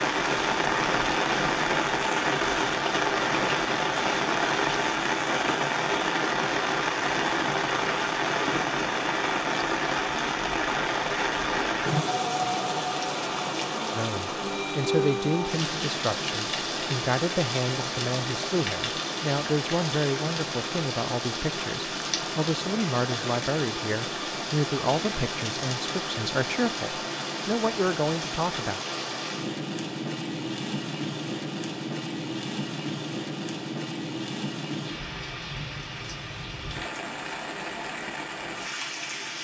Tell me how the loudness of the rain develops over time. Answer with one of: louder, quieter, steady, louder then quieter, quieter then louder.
quieter.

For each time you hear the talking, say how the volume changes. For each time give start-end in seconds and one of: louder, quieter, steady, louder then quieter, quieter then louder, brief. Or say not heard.
13.9-28.8 steady.